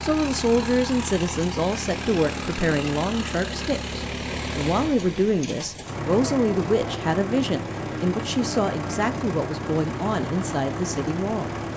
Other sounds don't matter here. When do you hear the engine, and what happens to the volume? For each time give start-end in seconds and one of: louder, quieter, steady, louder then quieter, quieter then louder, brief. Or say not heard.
0.0-11.7 steady.